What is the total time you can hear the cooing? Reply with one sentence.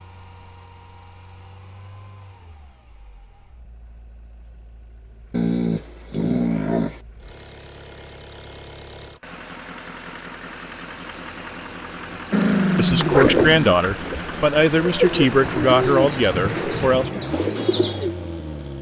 You can hear the cooing for 5 seconds altogether.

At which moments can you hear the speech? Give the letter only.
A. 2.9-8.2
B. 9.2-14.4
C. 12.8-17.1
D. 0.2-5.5
C.